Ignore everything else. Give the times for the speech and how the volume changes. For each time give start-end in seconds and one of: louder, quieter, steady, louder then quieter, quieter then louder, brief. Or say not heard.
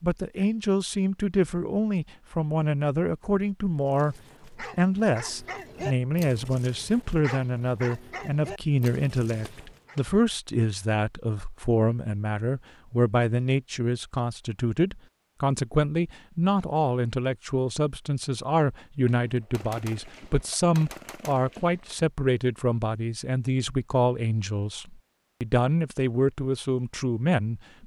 0.0-27.8 steady.